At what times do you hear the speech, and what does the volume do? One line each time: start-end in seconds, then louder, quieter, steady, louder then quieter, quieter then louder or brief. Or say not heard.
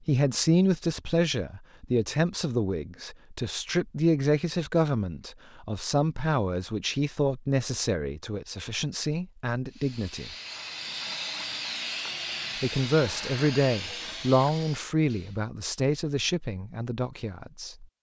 0.1-10.3 quieter
12.6-17.9 quieter.